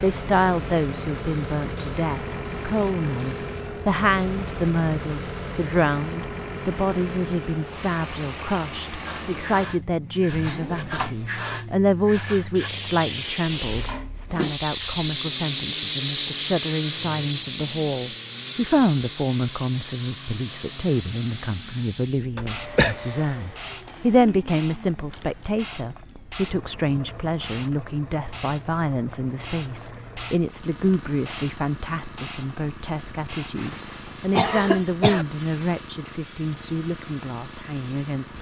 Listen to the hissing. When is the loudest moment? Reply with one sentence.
The volume of the hissing peaks at 16 seconds.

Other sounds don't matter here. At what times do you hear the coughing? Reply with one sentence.
The coughing can be heard from 10.4 to 11.2 s, from 22.4 to 22.9 s and from 33.5 to 35.2 s.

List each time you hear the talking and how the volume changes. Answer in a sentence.
You can hear the talking from 0.0 to 38.3 s, at a steady volume.